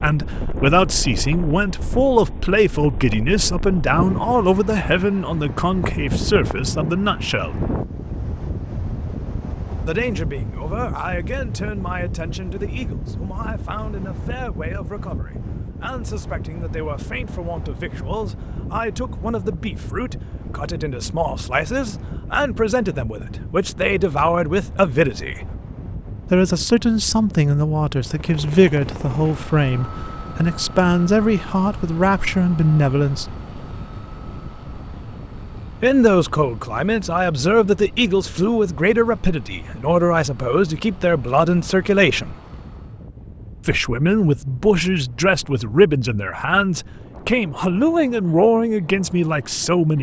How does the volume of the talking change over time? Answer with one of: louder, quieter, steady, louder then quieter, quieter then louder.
quieter then louder.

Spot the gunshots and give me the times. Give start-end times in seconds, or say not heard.
not heard.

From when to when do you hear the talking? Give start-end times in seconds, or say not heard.
0.0-7.7, 9.8-25.4, 26.3-33.2, 35.8-42.4, 43.6-49.9.